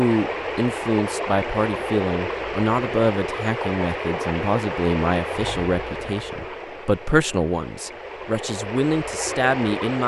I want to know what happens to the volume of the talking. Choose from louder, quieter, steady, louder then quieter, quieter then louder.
steady.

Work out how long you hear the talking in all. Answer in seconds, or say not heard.
10 s.